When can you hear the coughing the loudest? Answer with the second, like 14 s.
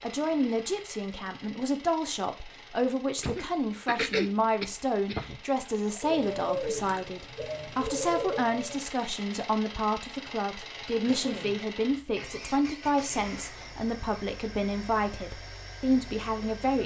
4 s.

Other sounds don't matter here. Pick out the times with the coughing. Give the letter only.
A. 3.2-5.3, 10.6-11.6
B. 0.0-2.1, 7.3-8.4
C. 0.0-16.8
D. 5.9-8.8
A.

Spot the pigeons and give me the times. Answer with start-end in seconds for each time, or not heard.
5.9-8.8.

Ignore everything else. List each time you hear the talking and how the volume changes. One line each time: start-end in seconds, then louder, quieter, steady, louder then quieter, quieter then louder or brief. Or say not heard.
0.0-16.8 steady.